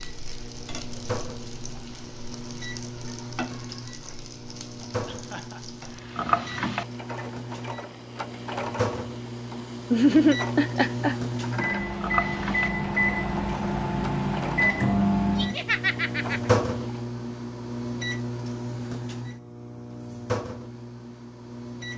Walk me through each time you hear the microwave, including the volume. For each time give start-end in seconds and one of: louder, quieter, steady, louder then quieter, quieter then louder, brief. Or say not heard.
0.0-21.9 louder then quieter.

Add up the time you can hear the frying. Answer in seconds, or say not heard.
17 s.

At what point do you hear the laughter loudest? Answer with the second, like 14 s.
10 s.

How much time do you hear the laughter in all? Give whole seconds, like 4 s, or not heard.
3 s.